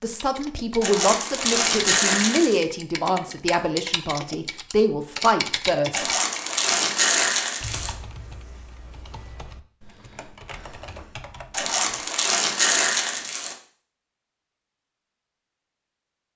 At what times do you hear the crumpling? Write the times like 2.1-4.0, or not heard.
0.8-2.6, 5.9-8.0, 11.5-13.6.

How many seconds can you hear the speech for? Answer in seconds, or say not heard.
6 s.